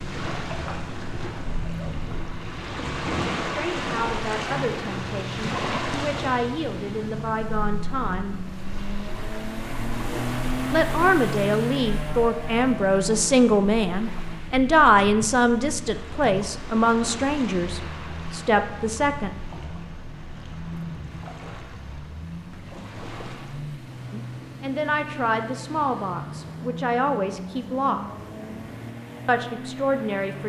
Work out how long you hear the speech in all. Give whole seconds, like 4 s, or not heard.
19 s.